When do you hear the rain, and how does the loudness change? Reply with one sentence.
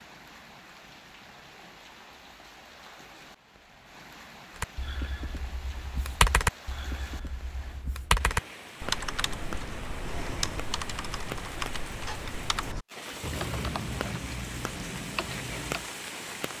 The rain can be heard from 0.0 to 16.5 s, getting louder.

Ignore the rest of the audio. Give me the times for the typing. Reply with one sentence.
The typing can be heard from 4.5 to 15.9 s.